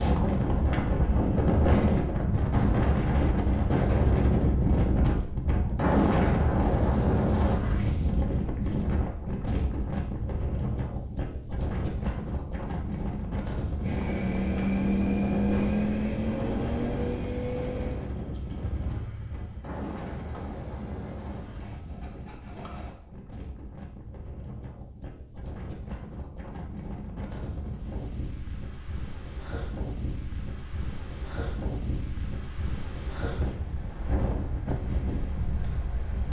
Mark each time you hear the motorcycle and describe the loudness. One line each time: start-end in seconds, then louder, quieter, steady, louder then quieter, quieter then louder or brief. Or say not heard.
13.8-22.9 quieter.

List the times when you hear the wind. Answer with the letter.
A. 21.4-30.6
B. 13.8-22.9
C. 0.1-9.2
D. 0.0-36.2
D.